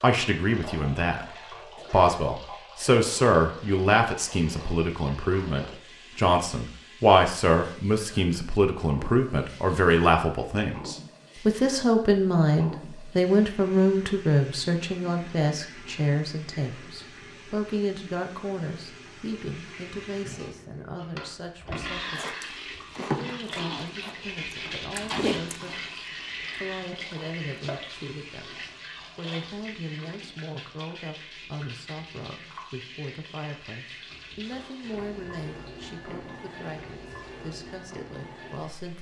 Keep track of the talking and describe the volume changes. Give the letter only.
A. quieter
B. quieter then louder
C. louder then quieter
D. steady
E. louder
A.